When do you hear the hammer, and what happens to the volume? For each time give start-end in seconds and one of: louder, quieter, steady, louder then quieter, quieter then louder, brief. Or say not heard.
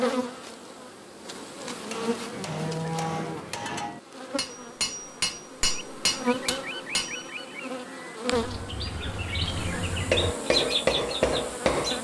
1.6-7.2 louder
10.1-11.9 brief.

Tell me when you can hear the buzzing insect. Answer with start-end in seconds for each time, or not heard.
0.0-11.9.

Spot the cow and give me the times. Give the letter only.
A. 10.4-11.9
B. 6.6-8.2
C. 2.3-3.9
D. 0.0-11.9
C.